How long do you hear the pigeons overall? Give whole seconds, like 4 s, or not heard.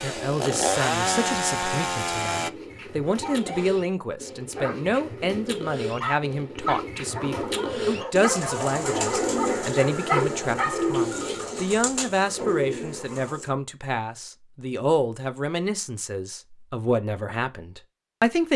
11 s.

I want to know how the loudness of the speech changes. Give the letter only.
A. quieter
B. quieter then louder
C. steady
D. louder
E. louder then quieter
C.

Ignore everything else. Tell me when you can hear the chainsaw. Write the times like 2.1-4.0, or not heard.
0.0-2.5.